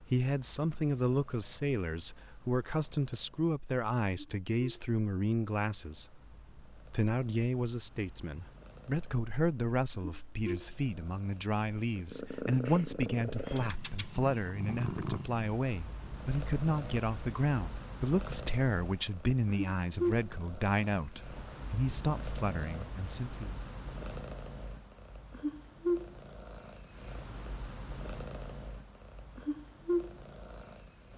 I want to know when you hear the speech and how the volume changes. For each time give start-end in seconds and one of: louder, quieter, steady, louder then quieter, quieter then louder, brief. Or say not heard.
0.0-23.6 steady.